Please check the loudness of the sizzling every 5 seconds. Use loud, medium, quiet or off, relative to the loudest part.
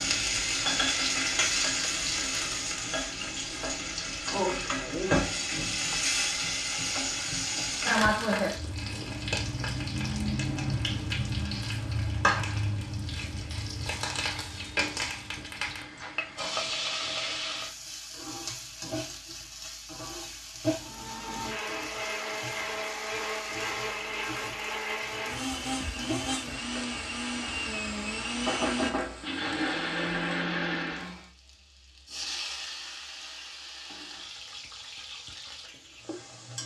loud, loud, loud, medium, medium, medium, quiet, quiet.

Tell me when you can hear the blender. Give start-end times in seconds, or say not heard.
20.8-31.3.